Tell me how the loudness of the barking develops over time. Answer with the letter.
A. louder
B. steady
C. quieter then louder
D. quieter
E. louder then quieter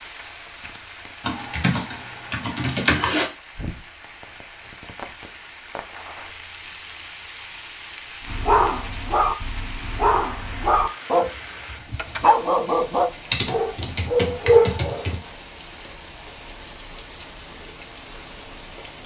A.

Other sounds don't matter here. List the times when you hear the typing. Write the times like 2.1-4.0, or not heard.
1.2-3.2, 13.3-15.2.